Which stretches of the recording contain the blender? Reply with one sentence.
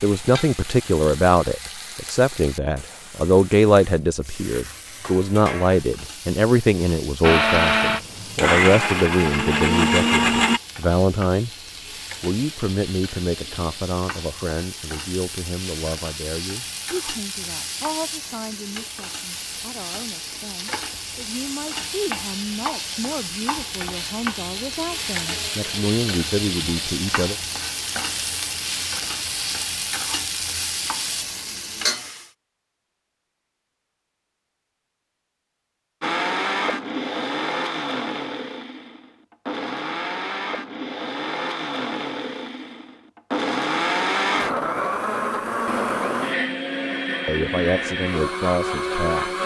You can hear the blender from 7.2 to 10.6 s and from 36.0 to 49.4 s.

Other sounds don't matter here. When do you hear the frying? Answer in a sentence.
You can hear the frying from 0.0 to 32.3 s.